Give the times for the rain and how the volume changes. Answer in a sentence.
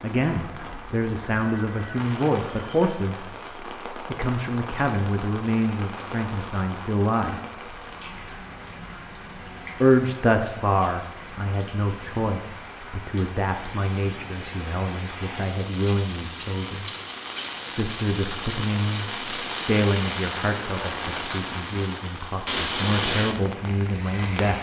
You can hear the rain from 0.0 to 24.5 s, getting louder.